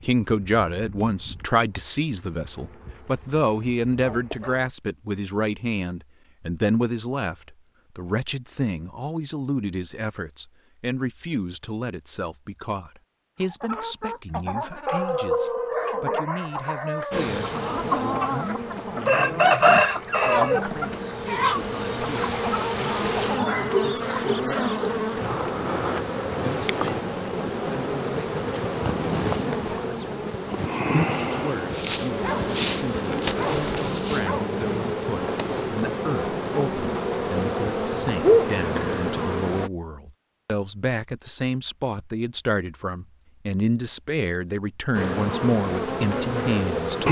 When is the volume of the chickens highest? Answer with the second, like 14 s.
20 s.